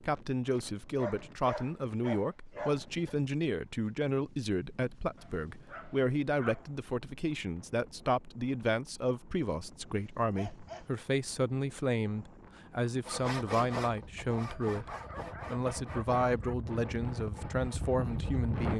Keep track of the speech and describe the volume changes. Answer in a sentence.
The loudness of the speech stays about the same.